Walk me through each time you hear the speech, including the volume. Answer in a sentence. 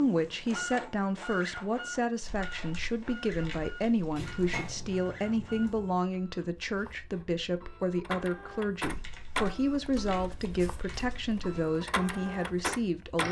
You can hear the speech from 0.0 to 13.2 s, at a steady volume.